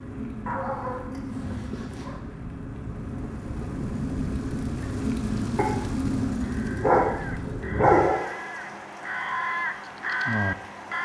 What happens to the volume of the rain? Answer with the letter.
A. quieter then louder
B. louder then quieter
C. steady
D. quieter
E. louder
B.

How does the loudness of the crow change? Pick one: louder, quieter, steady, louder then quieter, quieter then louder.
louder.